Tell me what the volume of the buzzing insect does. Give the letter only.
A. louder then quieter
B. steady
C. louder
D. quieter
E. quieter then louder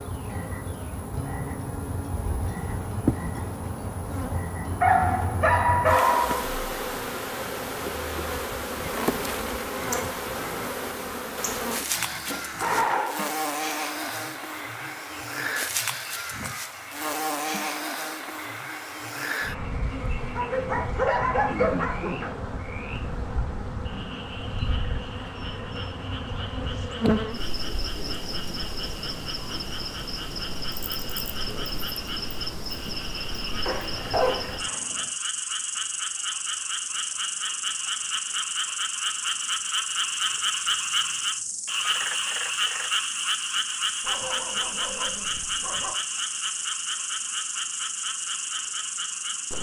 B.